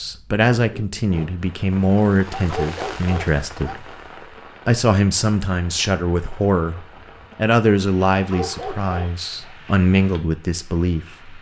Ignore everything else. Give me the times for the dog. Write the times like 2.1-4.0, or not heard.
2.4-3.8, 8.1-9.5.